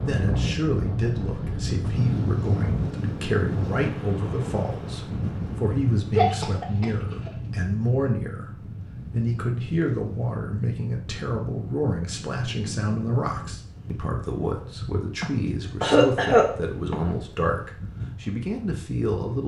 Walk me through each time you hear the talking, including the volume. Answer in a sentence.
The talking can be heard from 0.1 to 19.4 s, at a steady volume.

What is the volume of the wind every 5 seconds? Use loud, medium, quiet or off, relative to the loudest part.
loud, medium, medium, medium.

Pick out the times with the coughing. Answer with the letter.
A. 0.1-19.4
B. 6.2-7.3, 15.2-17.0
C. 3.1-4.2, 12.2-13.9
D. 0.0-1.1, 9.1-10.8
B.